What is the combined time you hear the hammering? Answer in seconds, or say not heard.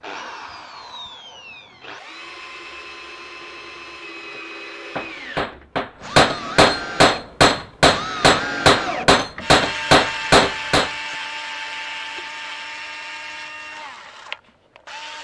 6 s.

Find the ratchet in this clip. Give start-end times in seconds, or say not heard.
not heard.